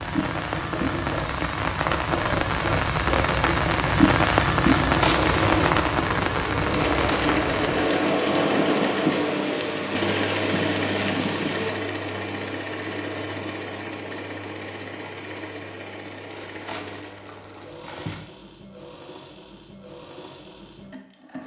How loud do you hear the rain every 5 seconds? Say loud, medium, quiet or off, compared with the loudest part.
loud, loud, medium, off, off.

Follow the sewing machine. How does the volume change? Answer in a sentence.
The volume of the sewing machine goes up, then down.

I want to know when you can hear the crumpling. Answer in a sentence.
You can hear the crumpling from 4.7 to 5.6 s and from 16.4 to 18.2 s.